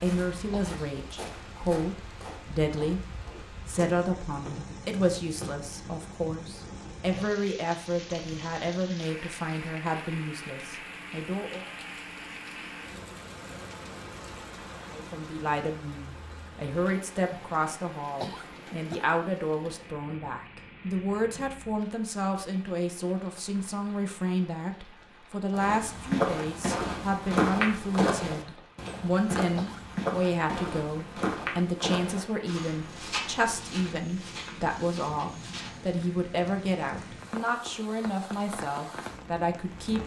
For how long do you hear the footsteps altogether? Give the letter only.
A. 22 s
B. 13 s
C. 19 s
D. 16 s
D.